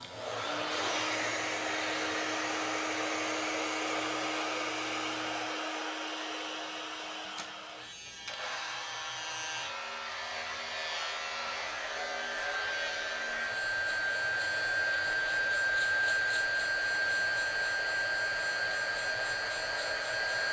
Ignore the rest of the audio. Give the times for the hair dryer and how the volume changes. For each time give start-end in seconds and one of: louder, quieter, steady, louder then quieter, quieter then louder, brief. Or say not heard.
0.0-20.4 quieter then louder.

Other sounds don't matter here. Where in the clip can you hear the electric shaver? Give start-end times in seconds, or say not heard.
0.0-20.4.